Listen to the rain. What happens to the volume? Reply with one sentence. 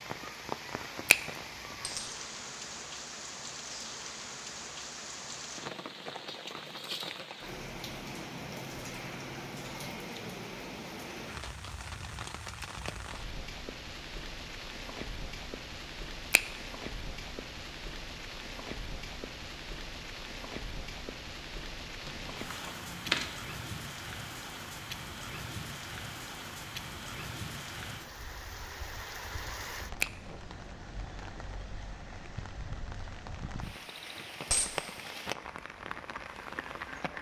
The volume of the rain stays about the same.